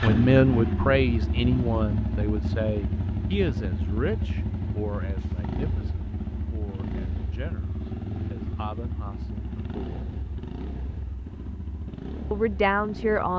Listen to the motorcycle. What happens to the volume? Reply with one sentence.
The volume of the motorcycle goes down.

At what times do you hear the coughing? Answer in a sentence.
You can't hear the coughing here.